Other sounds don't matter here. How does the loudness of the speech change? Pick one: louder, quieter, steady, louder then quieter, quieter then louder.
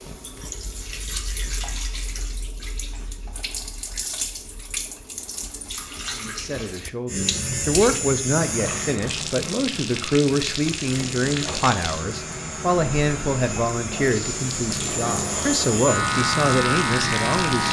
steady.